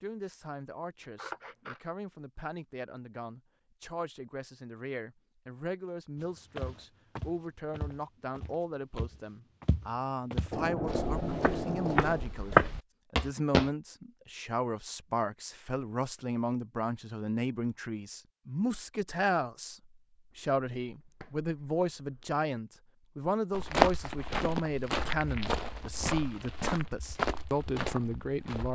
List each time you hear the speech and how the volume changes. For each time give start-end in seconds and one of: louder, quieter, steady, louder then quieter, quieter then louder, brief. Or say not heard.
0.0-28.6 louder.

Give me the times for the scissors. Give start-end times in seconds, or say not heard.
1.0-1.9, 10.5-12.3, 20.3-22.3.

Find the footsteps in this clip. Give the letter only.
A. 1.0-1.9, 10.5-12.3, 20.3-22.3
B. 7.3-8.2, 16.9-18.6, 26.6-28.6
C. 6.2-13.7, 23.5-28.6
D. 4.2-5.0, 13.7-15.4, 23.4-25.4
C.